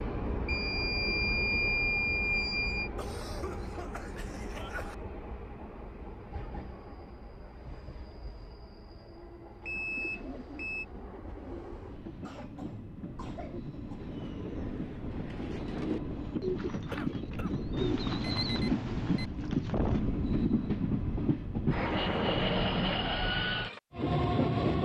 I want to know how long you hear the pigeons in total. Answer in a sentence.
The pigeons can be heard for 10 seconds in total.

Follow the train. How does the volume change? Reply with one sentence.
The loudness of the train goes down, then up.